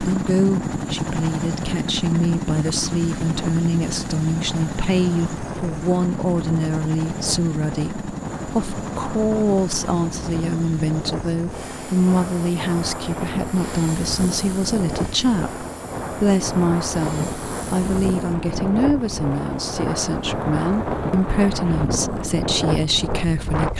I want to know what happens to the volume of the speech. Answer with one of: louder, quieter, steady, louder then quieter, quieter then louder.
steady.